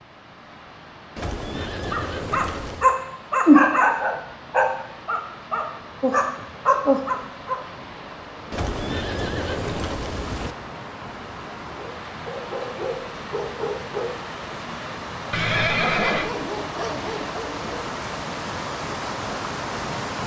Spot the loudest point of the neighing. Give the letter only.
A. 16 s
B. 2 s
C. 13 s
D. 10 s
A.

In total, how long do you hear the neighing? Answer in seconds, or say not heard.
5 s.